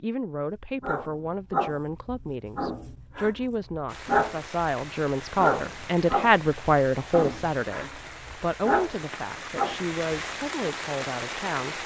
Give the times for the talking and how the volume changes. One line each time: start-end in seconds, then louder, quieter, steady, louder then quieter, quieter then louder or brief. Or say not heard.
0.0-11.8 louder then quieter.